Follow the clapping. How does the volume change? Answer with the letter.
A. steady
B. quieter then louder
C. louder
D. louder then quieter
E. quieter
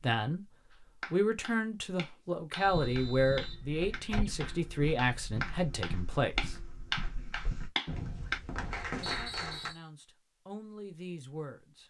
C.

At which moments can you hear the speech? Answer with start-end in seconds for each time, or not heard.
0.0-0.5, 1.1-6.5, 9.1-11.8.